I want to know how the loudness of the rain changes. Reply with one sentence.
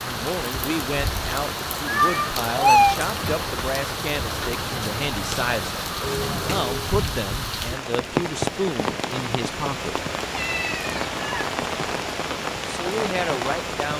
The volume of the rain stays about the same.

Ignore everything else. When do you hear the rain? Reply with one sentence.
The rain can be heard from 0.0 to 13.9 s.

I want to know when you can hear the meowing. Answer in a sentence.
You can hear the meowing from 1.9 to 3.0 s, from 6.0 to 6.8 s and from 10.3 to 11.4 s.